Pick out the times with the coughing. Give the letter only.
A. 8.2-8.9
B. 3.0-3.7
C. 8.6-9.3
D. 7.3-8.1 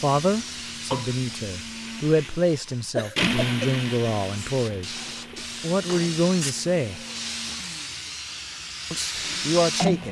B.